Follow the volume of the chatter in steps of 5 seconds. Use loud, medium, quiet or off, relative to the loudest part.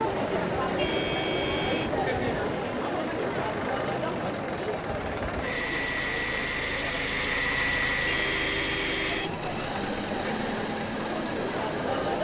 loud, medium, loud.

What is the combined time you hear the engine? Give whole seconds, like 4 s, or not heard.
12 s.